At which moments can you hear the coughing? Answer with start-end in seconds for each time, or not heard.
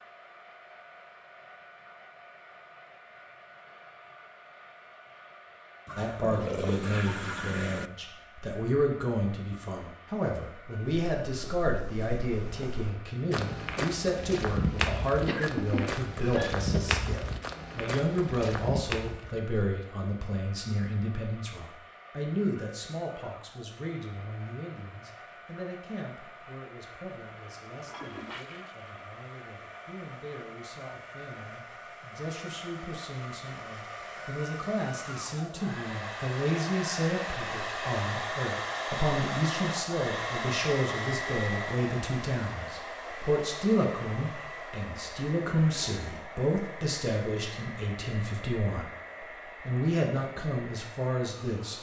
15.2-16.9.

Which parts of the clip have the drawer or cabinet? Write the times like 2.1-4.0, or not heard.
not heard.